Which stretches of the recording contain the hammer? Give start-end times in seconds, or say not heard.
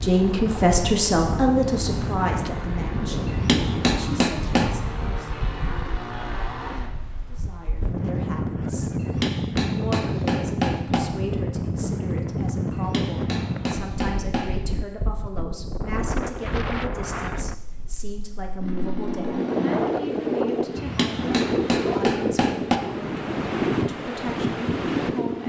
3.2-4.8, 8.9-11.0, 12.7-14.6, 20.8-22.8.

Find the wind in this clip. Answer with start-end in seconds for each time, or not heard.
0.0-25.4.